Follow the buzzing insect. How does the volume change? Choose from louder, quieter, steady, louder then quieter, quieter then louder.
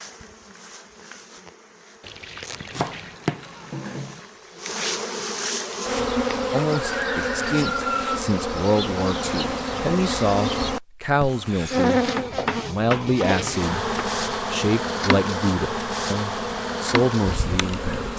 louder.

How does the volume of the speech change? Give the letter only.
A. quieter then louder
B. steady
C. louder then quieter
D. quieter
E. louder
B.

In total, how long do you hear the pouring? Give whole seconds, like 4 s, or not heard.
3 s.